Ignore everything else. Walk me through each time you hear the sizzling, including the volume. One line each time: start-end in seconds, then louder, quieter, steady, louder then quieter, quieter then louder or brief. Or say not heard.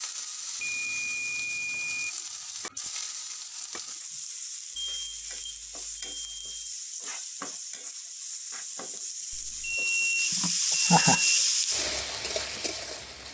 0.0-13.2 louder.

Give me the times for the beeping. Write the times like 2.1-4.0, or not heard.
0.6-2.1, 4.8-6.6, 9.3-11.4.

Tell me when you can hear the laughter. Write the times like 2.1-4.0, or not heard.
10.3-11.2.